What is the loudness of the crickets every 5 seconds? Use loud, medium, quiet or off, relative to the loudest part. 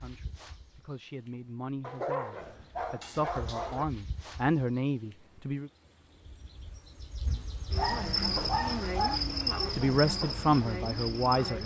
quiet, loud, loud.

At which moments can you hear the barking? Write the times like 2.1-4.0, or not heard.
1.8-3.9, 7.2-9.2.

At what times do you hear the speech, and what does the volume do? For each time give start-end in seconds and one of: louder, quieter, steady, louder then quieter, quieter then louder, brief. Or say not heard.
0.0-5.7 louder
9.8-11.6 brief.